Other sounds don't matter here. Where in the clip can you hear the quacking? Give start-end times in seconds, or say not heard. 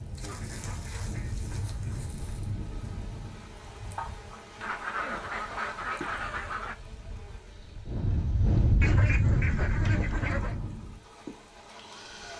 0.2-2.1, 4.6-6.8, 8.8-10.6.